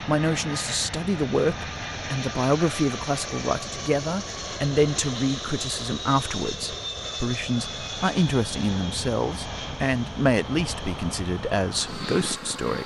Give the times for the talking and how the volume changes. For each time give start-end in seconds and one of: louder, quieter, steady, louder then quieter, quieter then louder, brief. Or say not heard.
0.0-12.8 steady.